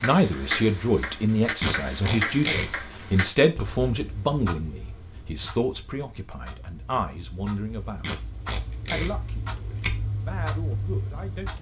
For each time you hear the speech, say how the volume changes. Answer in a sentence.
The speech can be heard from 0.0 to 8.2 s, getting quieter; and briefly from 8.9 to 11.5 s.